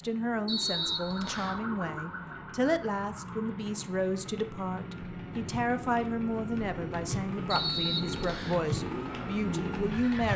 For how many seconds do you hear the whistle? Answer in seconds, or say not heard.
2 s.